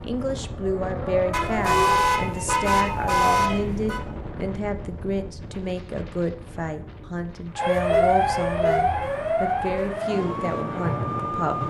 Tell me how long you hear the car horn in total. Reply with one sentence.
You can hear the car horn for 4 seconds altogether.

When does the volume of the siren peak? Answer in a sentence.
The volume of the siren peaks at 8 seconds.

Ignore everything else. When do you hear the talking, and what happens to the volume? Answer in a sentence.
The talking can be heard from 0.0 to 11.6 s, at a steady volume.